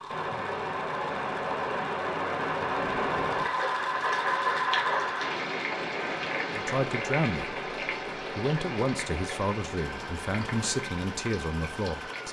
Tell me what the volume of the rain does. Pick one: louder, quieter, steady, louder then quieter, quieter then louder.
quieter.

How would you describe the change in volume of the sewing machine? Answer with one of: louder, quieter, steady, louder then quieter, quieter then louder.
louder then quieter.